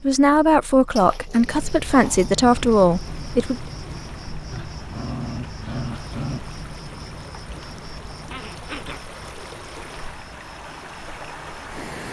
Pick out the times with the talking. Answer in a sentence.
You can hear the talking from 0.0 to 3.5 s.